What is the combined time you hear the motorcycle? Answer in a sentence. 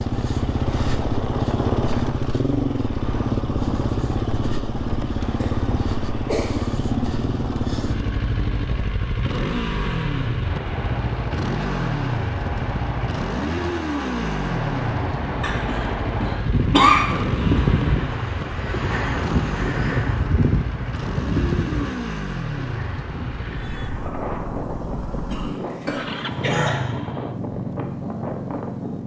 The motorcycle can be heard for 29 seconds in total.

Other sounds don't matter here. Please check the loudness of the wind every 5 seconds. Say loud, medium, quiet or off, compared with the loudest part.
medium, medium, medium, loud, loud, medium.